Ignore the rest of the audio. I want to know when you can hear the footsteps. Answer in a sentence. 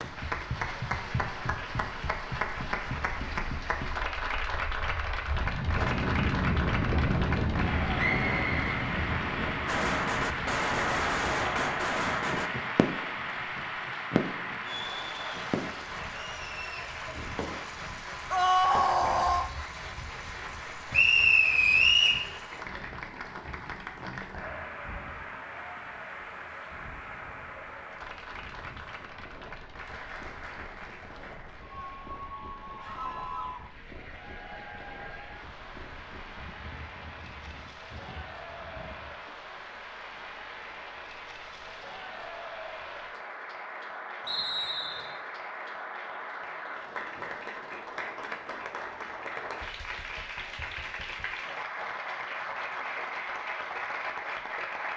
You can't hear the footsteps here.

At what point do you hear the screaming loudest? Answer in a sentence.
The volume of the screaming peaks at 19 seconds.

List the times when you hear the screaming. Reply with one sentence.
You can hear the screaming from 18.3 to 19.5 s and from 32.8 to 33.7 s.